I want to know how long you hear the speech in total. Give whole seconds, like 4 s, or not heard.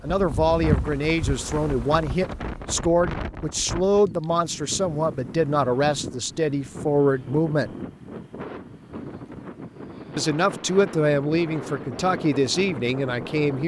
11 s.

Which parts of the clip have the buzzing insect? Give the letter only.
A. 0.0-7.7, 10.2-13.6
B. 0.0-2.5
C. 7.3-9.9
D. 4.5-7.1
B.